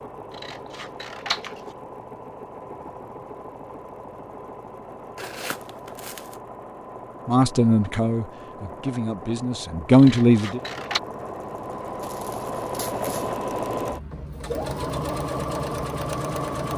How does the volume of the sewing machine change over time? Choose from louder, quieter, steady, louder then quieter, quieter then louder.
louder.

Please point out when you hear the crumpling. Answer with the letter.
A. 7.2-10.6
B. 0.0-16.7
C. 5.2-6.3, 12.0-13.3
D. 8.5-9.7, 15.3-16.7
C.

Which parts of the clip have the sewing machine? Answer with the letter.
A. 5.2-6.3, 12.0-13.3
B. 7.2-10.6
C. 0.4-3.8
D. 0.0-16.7
D.